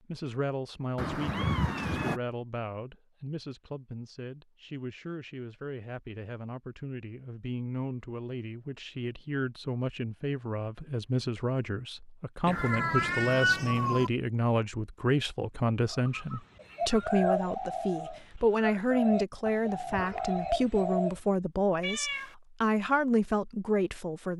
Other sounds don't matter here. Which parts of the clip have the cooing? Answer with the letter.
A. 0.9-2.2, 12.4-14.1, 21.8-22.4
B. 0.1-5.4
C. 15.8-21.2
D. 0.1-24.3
C.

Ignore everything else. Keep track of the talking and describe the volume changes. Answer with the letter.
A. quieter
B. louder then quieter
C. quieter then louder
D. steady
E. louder
E.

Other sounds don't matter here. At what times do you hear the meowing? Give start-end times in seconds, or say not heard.
0.9-2.2, 12.4-14.1, 21.8-22.4.